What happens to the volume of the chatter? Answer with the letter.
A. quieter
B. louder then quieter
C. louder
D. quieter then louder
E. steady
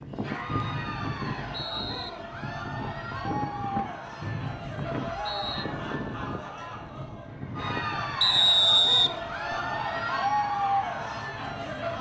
C.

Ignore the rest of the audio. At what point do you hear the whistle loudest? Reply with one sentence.
The volume of the whistle peaks at 9 seconds.